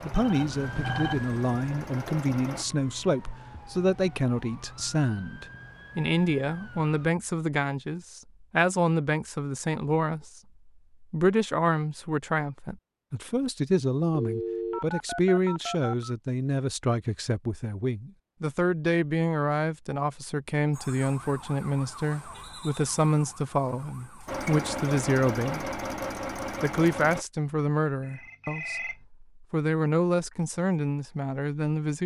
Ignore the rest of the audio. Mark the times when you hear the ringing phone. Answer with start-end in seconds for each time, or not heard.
0.1-1.2, 14.2-16.1, 28.0-29.0.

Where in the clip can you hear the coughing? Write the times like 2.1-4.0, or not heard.
not heard.